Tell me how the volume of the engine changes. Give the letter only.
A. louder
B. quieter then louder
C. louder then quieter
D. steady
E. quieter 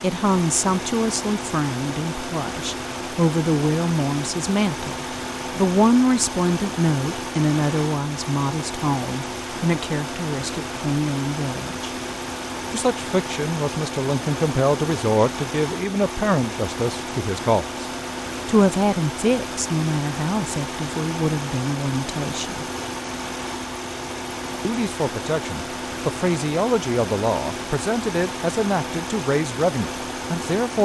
D.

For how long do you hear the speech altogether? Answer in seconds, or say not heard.
28 s.